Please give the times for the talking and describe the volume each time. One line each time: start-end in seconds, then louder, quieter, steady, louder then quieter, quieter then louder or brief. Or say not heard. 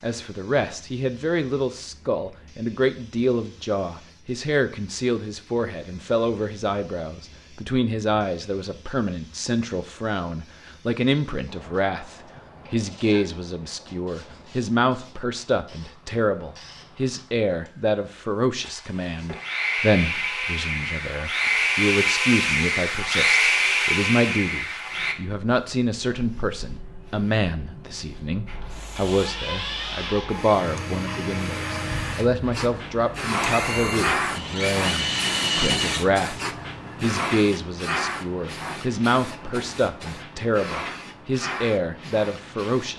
0.0-42.9 steady.